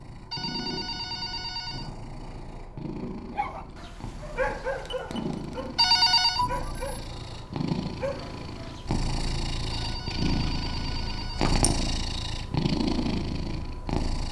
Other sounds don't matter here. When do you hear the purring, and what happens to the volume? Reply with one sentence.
The purring can be heard from 0.0 to 14.2 s, getting louder.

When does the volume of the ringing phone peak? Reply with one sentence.
The volume of the ringing phone peaks at 6 seconds.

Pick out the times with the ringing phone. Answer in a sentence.
You can hear the ringing phone from 0.3 to 1.9 s, from 5.8 to 6.5 s and from 9.7 to 11.6 s.